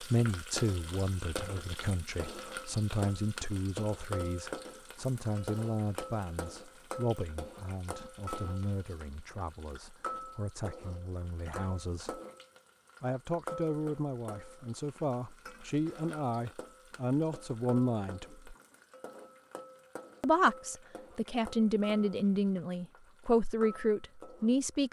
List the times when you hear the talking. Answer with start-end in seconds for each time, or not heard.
0.0-12.2, 13.0-18.6, 20.2-24.8.